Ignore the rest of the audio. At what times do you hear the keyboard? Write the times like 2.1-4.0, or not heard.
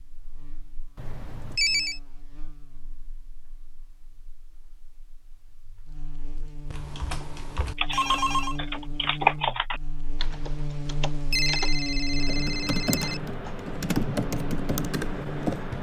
6.7-15.7.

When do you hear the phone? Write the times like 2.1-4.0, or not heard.
0.9-2.0, 7.9-8.6, 11.3-13.2.